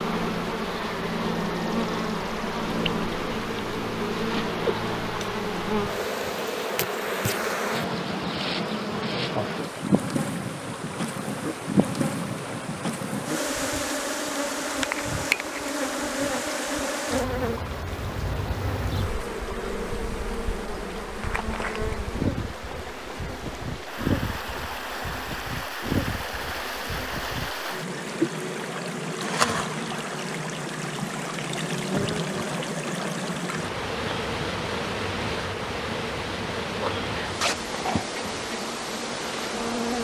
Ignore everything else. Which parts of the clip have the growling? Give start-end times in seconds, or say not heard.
37.4-38.1.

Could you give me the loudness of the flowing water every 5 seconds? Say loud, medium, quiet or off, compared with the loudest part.
medium, medium, medium, medium, medium, loud, loud, loud.